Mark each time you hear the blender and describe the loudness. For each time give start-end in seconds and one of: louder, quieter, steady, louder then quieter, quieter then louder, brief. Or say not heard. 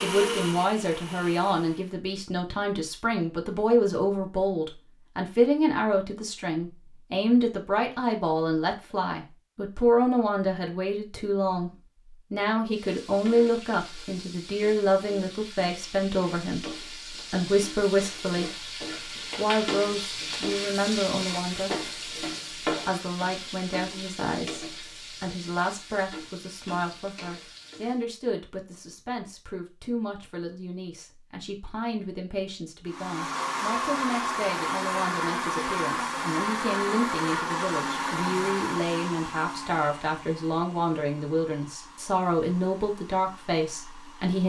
0.0-1.9 brief
32.9-44.4 quieter.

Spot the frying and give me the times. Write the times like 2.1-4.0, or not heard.
12.7-28.1.